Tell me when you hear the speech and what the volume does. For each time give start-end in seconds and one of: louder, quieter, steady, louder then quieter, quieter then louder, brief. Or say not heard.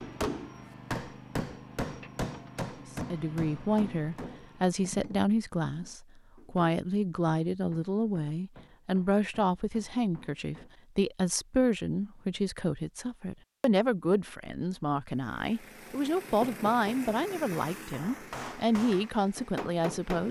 3.1-20.2 steady.